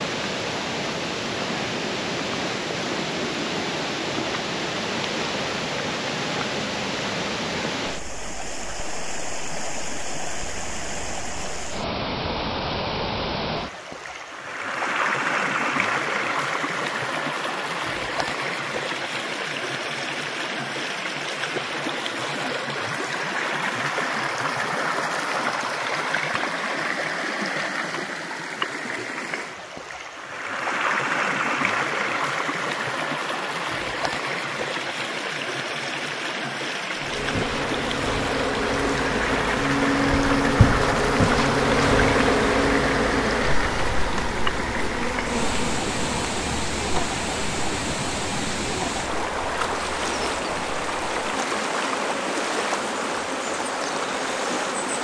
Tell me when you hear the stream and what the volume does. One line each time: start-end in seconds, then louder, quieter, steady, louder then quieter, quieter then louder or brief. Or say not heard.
0.0-55.0 steady.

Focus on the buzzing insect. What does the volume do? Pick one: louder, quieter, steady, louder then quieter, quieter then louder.
quieter.